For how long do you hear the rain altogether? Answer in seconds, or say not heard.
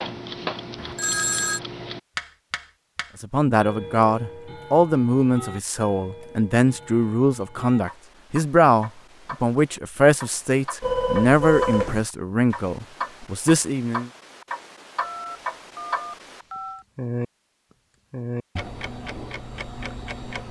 not heard.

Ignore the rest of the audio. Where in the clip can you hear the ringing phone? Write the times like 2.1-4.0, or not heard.
0.8-1.6, 10.8-12.1, 15.0-16.9.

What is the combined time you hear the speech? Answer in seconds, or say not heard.
11 s.